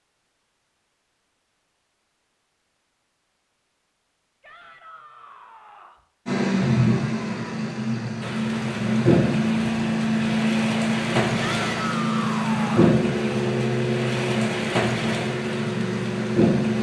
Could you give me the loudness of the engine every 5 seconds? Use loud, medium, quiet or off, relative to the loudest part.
off, loud, loud, loud.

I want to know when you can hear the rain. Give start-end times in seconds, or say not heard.
8.2-16.7.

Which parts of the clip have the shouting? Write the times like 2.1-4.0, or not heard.
4.4-6.0, 11.4-13.0.